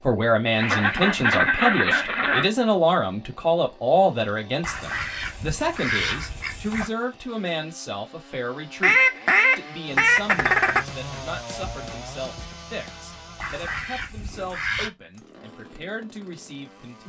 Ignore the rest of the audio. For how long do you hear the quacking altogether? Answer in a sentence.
You can hear the quacking for 8 seconds altogether.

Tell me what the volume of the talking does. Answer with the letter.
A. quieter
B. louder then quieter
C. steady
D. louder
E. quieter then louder
A.